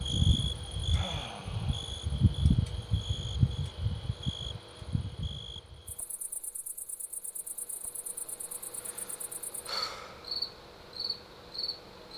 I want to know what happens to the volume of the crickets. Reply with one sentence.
The loudness of the crickets goes down, then up.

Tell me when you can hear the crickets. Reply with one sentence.
The crickets can be heard from 0.0 to 12.1 s.